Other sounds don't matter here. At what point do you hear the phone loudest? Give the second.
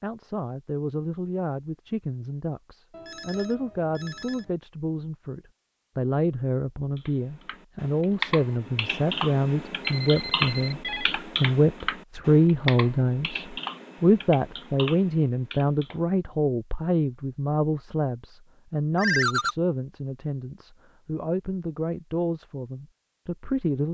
19 s.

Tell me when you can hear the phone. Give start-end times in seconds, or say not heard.
2.9-4.5, 9.8-11.1, 18.9-19.6.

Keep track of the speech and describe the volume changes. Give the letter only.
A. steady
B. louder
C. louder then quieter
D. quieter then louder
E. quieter
C.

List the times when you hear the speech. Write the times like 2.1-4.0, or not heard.
0.0-23.8.